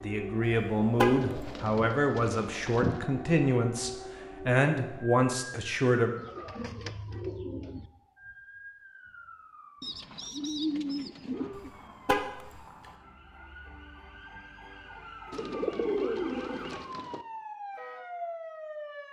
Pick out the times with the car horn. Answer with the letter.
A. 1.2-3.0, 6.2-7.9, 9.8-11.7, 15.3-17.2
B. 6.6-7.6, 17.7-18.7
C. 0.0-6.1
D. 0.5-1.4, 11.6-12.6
D.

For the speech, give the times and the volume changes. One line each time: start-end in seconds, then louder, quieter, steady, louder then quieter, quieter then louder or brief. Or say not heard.
0.0-6.1 steady.